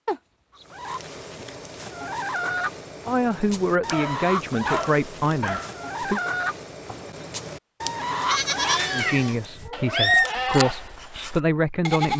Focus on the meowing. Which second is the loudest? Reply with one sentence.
The loudest moment of the meowing is at 10 seconds.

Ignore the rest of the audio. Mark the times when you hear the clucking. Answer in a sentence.
You can hear the clucking from 0.7 to 9.7 s.